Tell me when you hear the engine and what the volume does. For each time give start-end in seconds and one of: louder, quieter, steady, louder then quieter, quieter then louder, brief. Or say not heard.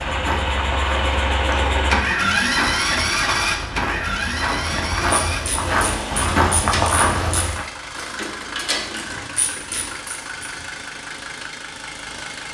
0.0-12.4 quieter.